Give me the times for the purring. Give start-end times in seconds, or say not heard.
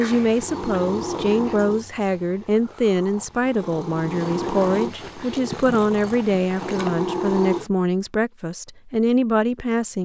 0.0-7.7.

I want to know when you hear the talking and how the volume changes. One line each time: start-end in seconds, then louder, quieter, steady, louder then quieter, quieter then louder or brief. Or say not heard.
0.0-9.9 steady.